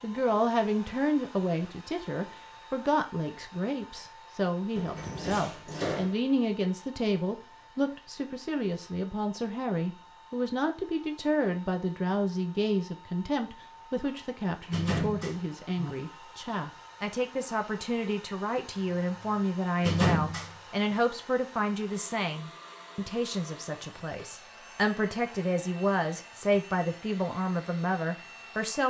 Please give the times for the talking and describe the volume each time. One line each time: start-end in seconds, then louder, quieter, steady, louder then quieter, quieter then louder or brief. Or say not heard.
0.0-28.8 steady.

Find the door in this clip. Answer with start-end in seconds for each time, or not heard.
4.8-6.2, 14.7-15.9, 19.8-20.9.